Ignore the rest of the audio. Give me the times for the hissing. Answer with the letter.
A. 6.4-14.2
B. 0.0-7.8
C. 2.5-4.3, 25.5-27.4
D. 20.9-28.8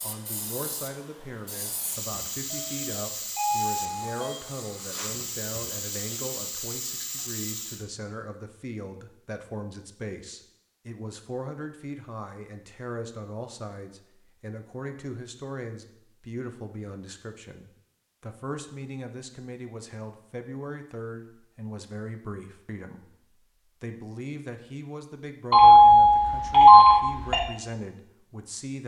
B.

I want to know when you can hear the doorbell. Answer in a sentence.
You can hear the doorbell from 2.5 to 4.3 s and from 25.5 to 27.4 s.